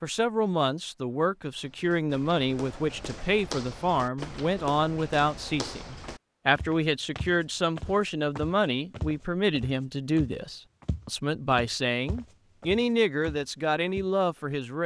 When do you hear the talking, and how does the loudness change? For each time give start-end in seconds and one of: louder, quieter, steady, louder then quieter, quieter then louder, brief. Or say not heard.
0.0-14.8 steady.